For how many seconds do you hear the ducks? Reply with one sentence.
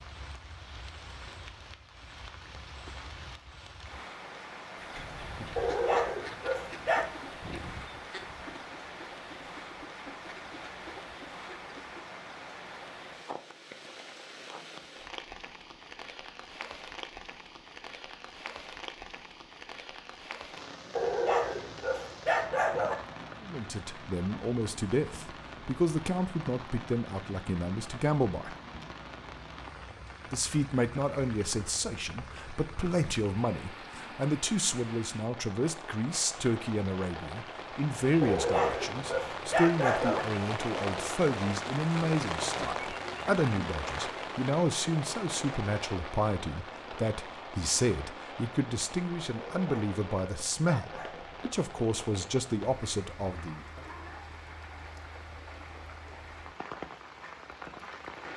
The ducks can be heard for 7 seconds in total.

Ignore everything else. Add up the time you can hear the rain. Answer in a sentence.
You can hear the rain for 58 seconds altogether.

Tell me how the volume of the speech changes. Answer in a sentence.
The volume of the speech stays about the same.